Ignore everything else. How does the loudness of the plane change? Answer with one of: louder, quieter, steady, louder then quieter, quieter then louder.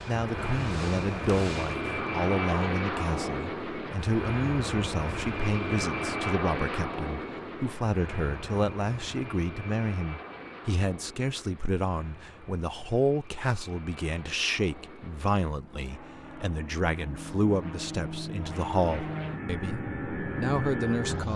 quieter then louder.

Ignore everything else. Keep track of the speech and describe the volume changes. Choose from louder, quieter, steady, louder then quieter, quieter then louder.
steady.